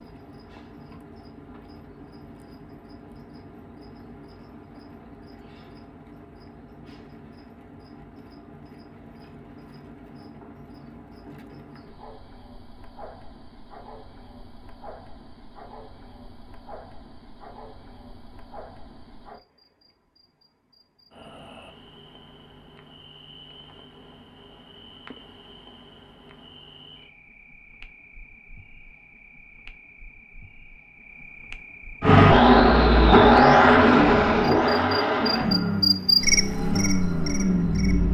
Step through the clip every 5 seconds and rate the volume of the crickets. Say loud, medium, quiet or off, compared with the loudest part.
quiet, quiet, quiet, quiet, quiet, quiet, quiet, loud.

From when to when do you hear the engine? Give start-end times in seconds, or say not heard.
32.0-38.0.